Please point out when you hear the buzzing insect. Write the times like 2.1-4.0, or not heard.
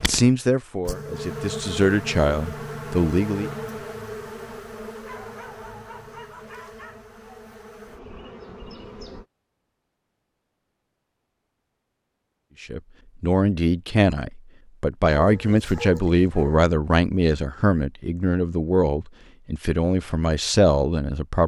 0.0-9.2.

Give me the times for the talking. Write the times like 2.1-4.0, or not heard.
0.0-3.5, 12.6-21.4.